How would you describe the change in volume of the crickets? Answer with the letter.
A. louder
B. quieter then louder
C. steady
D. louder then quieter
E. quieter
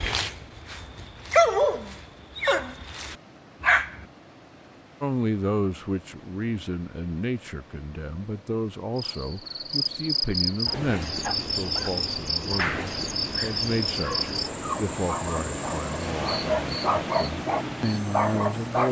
E.